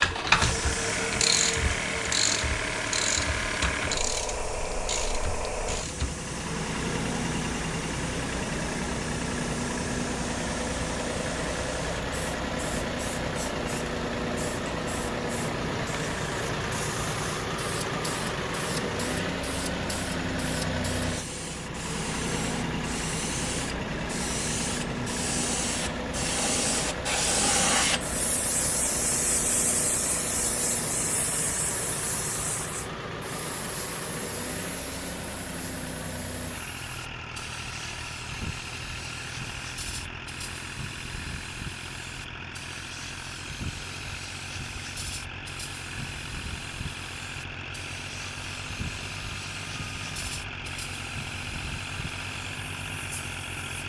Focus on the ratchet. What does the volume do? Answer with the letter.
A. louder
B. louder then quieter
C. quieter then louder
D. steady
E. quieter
E.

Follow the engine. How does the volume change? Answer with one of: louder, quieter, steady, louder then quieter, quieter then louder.
quieter.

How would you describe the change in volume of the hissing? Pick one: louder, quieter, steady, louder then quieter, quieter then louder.
louder then quieter.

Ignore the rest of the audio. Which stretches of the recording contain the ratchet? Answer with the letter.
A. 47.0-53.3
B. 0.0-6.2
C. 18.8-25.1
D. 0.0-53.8
B.